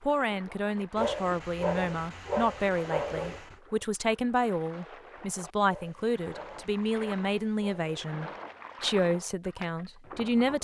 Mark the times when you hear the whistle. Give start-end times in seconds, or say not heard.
not heard.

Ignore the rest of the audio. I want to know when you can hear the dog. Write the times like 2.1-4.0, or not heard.
0.9-3.5, 5.7-8.2.